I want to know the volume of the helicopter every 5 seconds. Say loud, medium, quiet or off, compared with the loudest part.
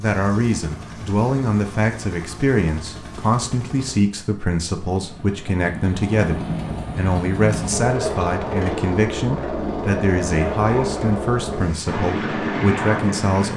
quiet, loud, loud.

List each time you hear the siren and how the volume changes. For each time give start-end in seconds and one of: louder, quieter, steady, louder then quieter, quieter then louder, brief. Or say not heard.
not heard.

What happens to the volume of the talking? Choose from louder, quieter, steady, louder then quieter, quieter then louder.
steady.